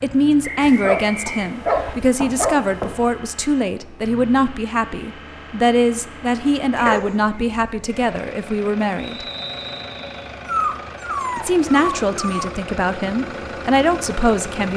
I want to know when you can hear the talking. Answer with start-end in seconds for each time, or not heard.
0.0-9.2, 11.3-14.7.